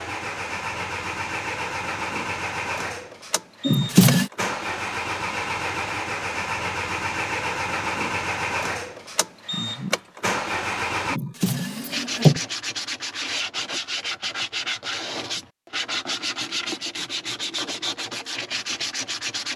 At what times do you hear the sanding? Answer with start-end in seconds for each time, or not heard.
11.8-19.5.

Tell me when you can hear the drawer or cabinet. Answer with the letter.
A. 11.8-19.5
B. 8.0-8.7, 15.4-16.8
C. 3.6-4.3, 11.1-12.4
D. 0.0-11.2
C.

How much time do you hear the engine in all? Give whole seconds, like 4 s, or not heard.
11 s.